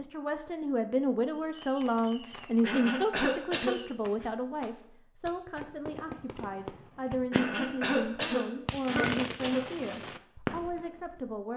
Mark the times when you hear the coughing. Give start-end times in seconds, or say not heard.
2.6-4.2, 7.3-9.7.